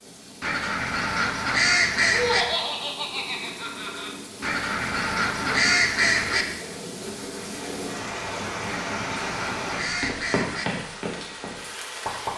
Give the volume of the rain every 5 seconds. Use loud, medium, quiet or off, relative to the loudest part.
medium, loud, loud.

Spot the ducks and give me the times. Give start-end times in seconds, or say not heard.
0.4-2.5, 4.4-6.5, 8.7-10.7.